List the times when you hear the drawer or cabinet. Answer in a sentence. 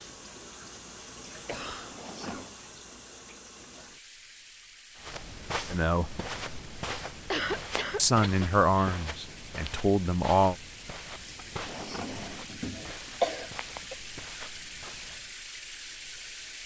You can hear the drawer or cabinet from 1.8 to 2.5 s and from 11.3 to 13.2 s.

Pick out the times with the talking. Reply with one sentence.
The talking can be heard from 5.7 to 6.2 s and from 8.0 to 10.6 s.